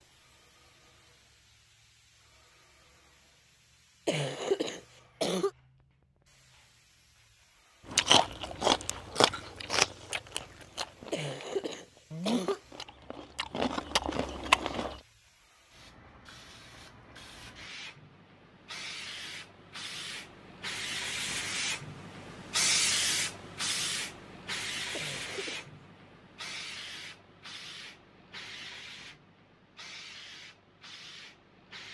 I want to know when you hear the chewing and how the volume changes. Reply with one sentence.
You can hear the chewing from 7.9 to 14.9 s, getting quieter then louder.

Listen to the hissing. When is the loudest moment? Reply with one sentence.
The volume of the hissing peaks at 23 seconds.